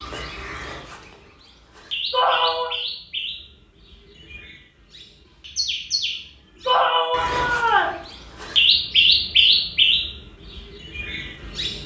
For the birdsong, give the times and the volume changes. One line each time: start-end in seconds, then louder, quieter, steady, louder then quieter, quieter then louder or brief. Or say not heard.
0.0-11.8 louder.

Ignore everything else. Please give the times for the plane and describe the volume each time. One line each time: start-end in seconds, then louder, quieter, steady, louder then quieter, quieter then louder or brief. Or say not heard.
not heard.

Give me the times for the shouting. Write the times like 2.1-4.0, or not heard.
2.1-2.8, 6.7-8.0.